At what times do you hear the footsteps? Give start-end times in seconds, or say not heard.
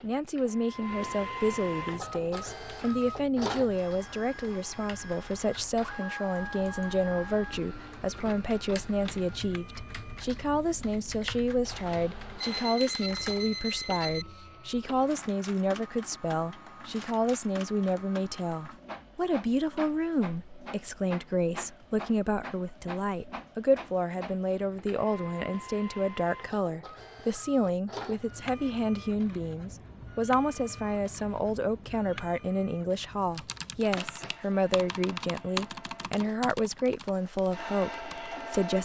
not heard.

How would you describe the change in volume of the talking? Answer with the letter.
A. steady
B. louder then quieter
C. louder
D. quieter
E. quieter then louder
A.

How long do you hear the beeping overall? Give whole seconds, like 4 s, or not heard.
2 s.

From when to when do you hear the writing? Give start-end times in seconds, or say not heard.
not heard.